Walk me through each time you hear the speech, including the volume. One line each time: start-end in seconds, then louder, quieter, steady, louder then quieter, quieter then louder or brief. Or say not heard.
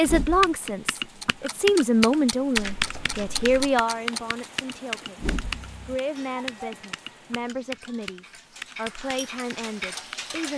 0.0-10.5 quieter.